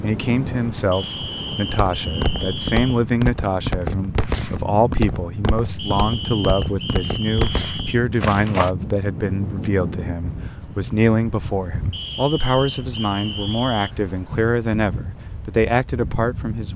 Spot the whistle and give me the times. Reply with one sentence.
The whistle can be heard from 0.9 to 3.0 s, from 5.8 to 8.0 s and from 11.9 to 13.9 s.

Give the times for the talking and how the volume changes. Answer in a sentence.
You can hear the talking from 0.0 to 16.7 s, at a steady volume.